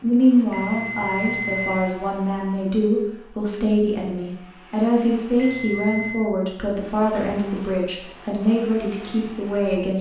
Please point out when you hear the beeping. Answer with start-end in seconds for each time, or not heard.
0.5-1.9, 5.3-6.3.